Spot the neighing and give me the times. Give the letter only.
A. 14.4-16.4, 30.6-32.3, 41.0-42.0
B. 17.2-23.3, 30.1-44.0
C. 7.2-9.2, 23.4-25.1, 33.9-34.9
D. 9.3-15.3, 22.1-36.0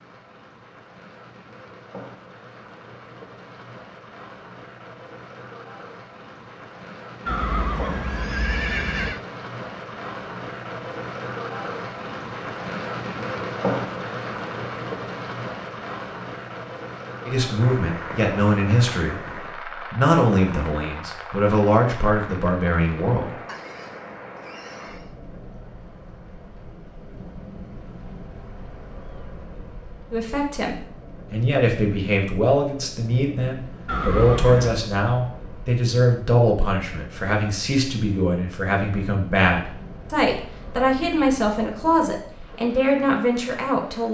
C.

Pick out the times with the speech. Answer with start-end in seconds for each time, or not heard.
17.2-23.3, 30.1-44.0.